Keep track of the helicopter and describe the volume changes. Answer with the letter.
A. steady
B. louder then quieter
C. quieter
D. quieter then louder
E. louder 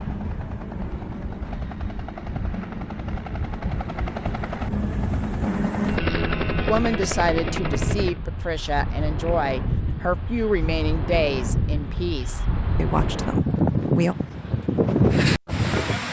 E.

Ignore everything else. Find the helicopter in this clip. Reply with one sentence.
You can hear the helicopter from 0.0 to 8.2 s.